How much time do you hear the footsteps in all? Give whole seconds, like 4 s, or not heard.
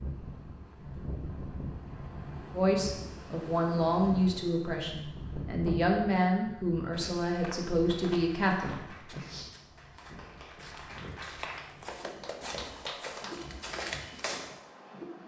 8 s.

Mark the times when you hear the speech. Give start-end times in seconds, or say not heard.
2.5-9.2.